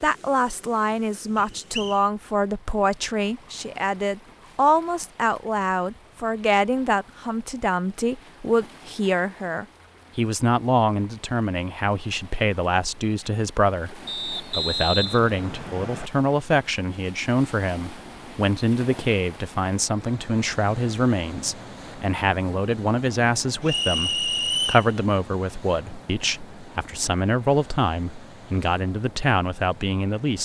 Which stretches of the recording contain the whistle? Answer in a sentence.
You can hear the whistle from 1.4 to 2.0 s, from 14.1 to 16.1 s and from 23.6 to 24.9 s.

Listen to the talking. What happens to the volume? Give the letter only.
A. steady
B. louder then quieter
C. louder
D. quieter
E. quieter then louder
A.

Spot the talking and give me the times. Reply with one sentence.
The talking can be heard from 0.0 to 30.4 s.